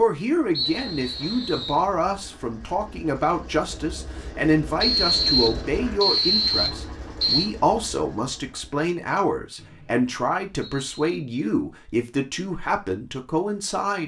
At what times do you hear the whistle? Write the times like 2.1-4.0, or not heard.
0.6-1.8, 4.8-7.5, 9.6-11.2.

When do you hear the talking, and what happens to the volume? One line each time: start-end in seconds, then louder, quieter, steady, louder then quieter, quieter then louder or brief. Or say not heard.
0.0-14.0 steady.